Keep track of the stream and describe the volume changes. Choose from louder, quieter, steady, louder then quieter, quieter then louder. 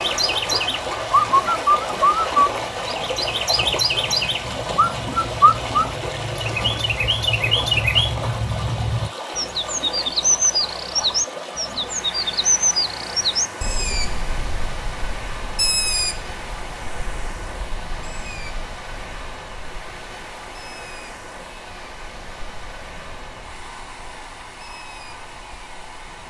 quieter.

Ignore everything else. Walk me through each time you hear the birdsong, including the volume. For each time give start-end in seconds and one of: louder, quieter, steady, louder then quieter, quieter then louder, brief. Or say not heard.
0.0-26.2 quieter.